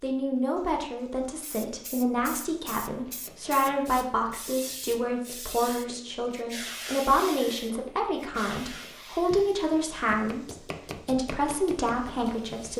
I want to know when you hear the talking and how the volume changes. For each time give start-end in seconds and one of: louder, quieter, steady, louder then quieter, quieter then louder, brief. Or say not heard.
0.0-12.7 steady.